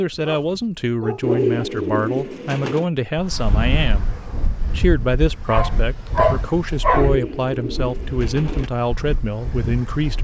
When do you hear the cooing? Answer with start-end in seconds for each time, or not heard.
1.2-2.9, 7.0-8.7.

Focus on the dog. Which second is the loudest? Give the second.
6 s.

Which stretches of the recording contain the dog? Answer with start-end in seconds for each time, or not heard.
0.1-1.5, 5.5-7.2.